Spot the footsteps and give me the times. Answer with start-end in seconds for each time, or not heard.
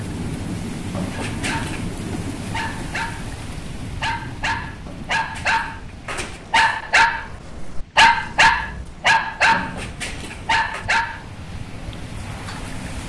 not heard.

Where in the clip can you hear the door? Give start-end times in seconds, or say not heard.
0.9-1.9, 4.8-6.6, 9.5-10.8.